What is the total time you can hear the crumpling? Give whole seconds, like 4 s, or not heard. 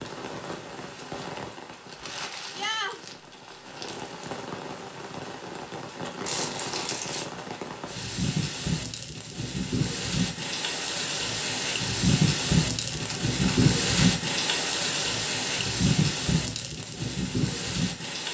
5 s.